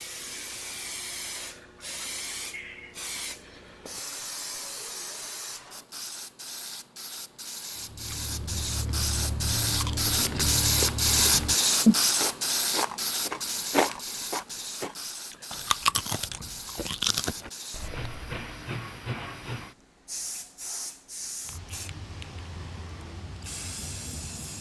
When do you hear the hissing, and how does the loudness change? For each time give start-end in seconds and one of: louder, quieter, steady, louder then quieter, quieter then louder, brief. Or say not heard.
0.0-24.5 louder then quieter.